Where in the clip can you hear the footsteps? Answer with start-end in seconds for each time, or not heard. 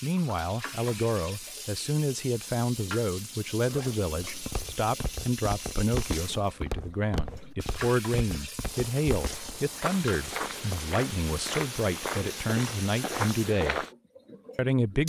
4.2-13.9.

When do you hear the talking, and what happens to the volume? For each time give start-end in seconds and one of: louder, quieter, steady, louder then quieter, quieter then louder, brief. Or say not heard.
0.0-13.8 steady
14.6-15.0 brief.